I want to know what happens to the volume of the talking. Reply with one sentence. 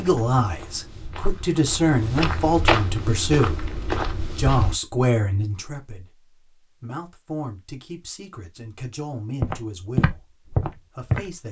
The loudness of the talking goes down.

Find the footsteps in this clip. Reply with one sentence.
The footsteps can be heard from 0.0 to 4.8 s and from 9.4 to 11.3 s.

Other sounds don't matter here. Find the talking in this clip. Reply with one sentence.
You can hear the talking from 0.0 to 11.4 s.